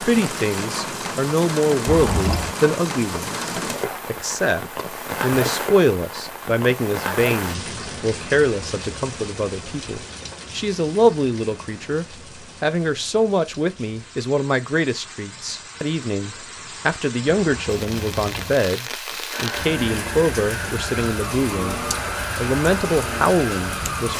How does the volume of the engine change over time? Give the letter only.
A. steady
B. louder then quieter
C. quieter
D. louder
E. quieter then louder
A.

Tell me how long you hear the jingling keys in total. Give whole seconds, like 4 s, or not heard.
2 s.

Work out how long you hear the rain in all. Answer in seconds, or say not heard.
24 s.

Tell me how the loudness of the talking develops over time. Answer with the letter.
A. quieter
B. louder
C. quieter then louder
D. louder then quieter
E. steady
E.